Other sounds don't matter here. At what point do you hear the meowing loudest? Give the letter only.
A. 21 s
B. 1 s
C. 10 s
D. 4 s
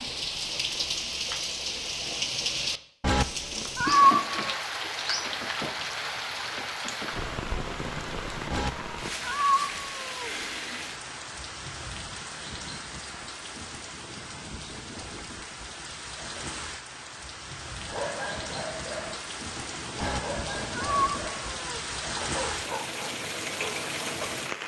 D.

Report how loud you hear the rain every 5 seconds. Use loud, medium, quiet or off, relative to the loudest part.
loud, loud, medium, medium, loud.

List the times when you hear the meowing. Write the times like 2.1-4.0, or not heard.
3.0-4.3, 8.5-10.5, 20.0-21.8.